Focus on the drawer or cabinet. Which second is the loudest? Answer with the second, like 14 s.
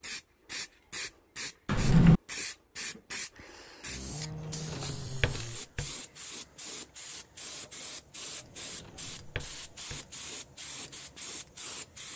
2 s.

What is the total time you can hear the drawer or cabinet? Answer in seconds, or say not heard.
3 s.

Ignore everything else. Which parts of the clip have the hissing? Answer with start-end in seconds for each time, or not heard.
0.0-12.1.